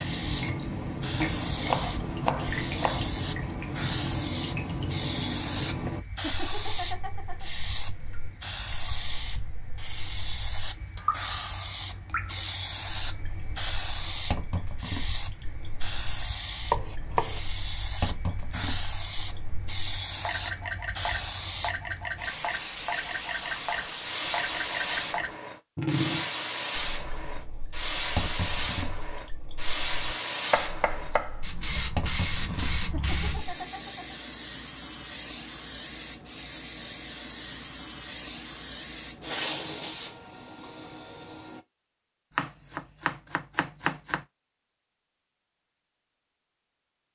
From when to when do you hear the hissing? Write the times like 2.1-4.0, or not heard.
0.0-41.6.